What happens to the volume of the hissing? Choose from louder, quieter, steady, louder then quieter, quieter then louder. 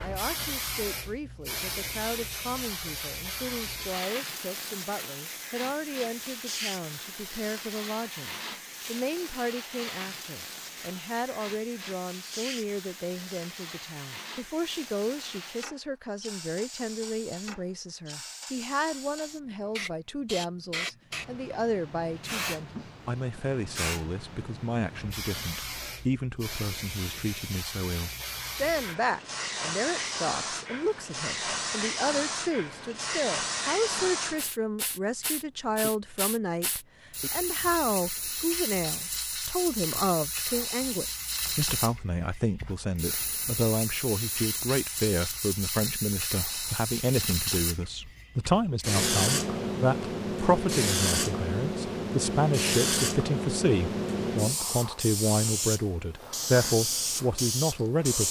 louder.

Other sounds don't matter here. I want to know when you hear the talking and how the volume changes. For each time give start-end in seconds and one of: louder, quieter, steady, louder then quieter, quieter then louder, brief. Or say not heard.
0.0-58.2 louder.